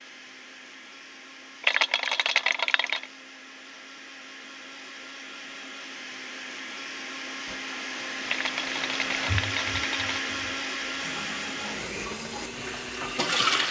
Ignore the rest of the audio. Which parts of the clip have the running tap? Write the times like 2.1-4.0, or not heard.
7.5-13.6.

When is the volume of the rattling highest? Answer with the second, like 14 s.
2 s.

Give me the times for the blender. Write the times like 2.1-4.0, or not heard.
0.0-13.6.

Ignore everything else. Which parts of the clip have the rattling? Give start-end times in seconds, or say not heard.
1.6-3.1, 8.2-10.2.